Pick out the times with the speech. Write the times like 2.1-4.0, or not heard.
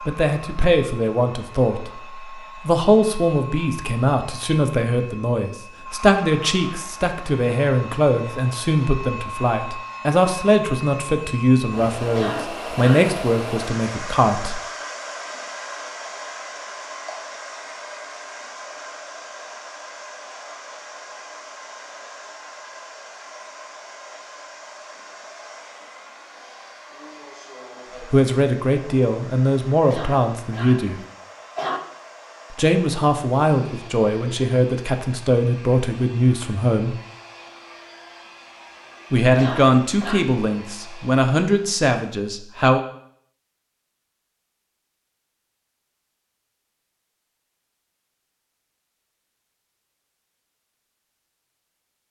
0.1-1.9, 2.6-14.6, 28.1-31.0, 32.5-37.0, 39.1-42.8.